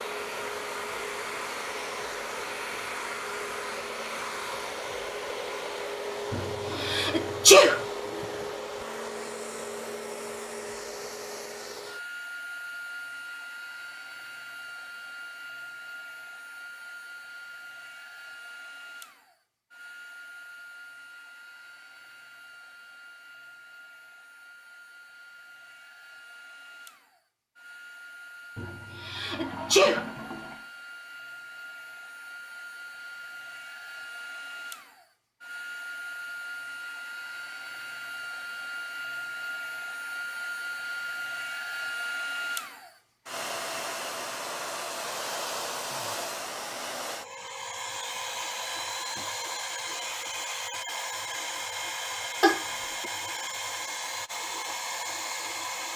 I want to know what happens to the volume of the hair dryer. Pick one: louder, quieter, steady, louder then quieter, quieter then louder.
quieter then louder.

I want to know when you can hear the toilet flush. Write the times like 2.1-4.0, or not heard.
6.7-8.7, 29.3-30.7, 52.4-53.1.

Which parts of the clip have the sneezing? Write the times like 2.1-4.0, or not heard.
6.3-7.8, 28.6-30.1.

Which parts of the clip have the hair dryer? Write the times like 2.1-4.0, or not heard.
0.0-55.9.